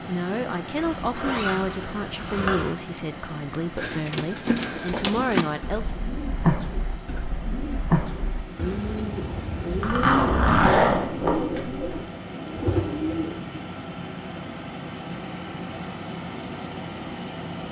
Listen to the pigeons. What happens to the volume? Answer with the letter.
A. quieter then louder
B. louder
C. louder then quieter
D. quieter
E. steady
E.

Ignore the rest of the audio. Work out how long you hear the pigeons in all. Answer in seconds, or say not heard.
10 s.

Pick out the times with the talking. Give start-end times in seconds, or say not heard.
0.1-6.0.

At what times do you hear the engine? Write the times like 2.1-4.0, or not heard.
0.0-17.6.